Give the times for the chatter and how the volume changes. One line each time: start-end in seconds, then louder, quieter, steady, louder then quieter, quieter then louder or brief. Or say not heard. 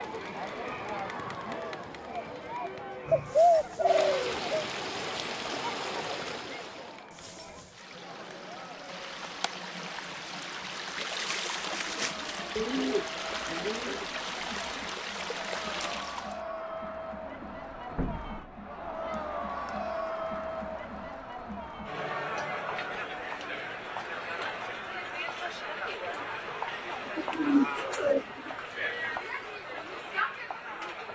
0.0-31.1 quieter then louder.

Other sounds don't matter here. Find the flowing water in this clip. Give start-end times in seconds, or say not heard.
0.0-16.4.